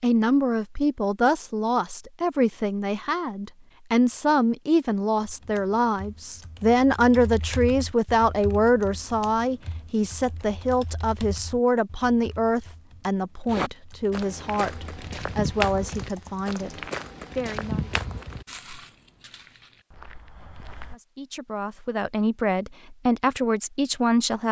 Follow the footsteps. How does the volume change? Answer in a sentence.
The volume of the footsteps goes up, then down.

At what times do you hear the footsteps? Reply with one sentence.
You can hear the footsteps from 13.5 to 20.9 s.